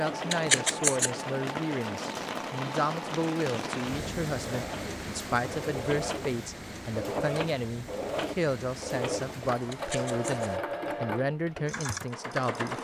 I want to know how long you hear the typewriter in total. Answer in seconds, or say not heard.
not heard.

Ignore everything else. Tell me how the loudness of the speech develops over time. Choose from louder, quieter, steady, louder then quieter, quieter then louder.
steady.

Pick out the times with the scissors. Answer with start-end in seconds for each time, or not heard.
0.3-1.1, 9.7-10.5.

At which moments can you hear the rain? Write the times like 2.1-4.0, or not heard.
0.0-10.6.